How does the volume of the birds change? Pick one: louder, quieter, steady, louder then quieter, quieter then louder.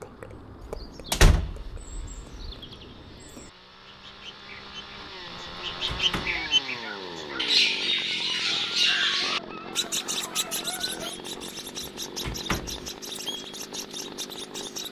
louder then quieter.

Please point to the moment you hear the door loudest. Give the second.
1 s.